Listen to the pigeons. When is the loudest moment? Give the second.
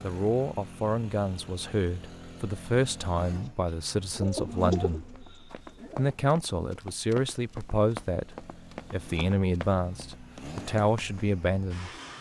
5 s.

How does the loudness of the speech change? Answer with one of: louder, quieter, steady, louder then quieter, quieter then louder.
steady.